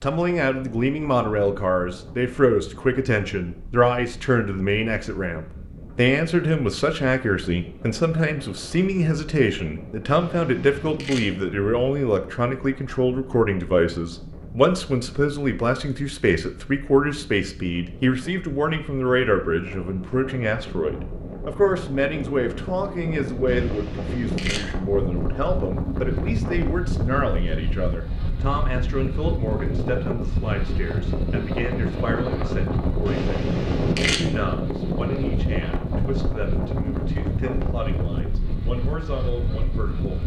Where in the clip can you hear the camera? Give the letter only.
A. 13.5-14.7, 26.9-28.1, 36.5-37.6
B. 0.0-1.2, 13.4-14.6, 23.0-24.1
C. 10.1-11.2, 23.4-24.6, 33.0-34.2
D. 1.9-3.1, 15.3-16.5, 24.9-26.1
C.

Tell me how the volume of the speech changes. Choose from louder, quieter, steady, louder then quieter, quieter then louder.
quieter.